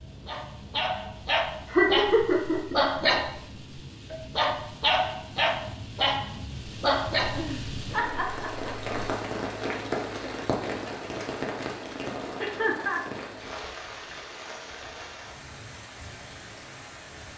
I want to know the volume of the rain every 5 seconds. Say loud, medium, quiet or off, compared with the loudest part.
medium, loud, loud, medium.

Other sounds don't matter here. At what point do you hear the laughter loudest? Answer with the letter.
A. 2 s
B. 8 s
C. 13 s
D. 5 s
A.